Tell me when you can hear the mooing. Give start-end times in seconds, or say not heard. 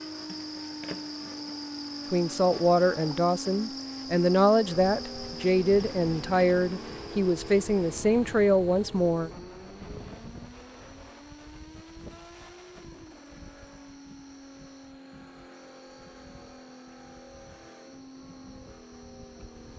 not heard.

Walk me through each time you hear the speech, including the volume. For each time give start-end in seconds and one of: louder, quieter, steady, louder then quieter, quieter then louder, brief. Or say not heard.
2.1-9.3 steady.